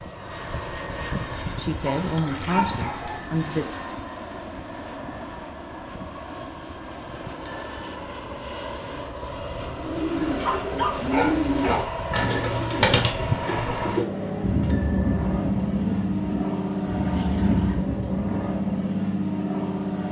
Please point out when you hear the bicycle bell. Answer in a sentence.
The bicycle bell can be heard from 3.0 to 3.5 s, from 7.5 to 8.0 s and from 14.7 to 15.2 s.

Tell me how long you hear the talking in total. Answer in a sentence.
The talking can be heard for 2 seconds in total.